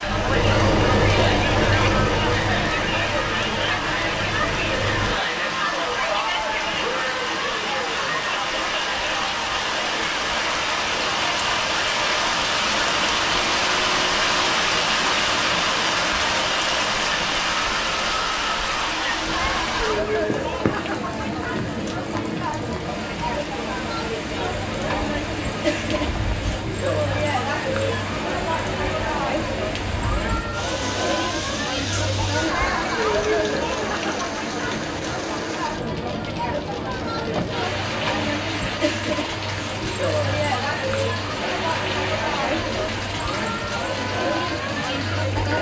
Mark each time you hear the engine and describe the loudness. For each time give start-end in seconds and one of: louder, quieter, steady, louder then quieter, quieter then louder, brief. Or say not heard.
0.0-5.2 quieter.